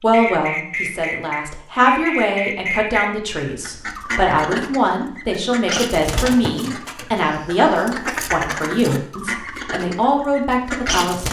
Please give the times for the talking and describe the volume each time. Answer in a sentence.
The talking can be heard from 0.0 to 11.2 s, at a steady volume.